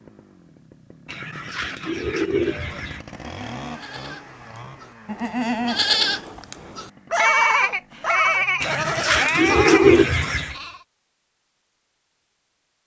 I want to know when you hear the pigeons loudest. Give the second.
10 s.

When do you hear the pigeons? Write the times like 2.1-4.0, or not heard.
1.1-3.0, 8.6-10.6.